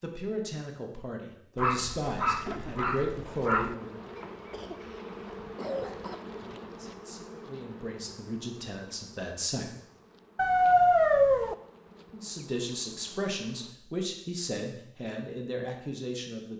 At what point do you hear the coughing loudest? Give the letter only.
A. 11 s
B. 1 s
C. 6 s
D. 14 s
C.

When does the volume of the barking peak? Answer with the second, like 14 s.
11 s.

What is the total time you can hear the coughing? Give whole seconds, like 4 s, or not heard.
2 s.